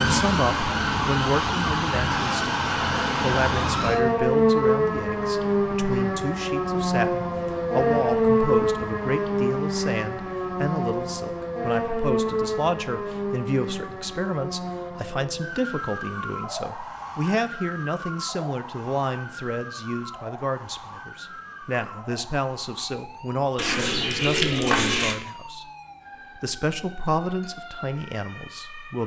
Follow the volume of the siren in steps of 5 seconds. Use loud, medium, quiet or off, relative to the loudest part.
loud, loud, medium, quiet, quiet, quiet.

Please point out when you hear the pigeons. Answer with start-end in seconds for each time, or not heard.
23.6-25.1.